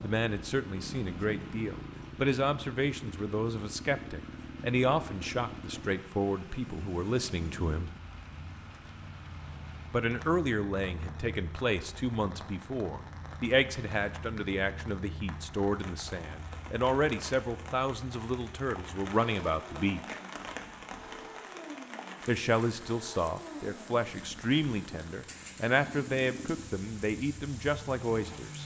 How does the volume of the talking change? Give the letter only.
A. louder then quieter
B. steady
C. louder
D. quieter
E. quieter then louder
B.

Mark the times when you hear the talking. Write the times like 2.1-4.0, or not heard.
0.0-7.9, 9.9-20.2, 22.2-28.6.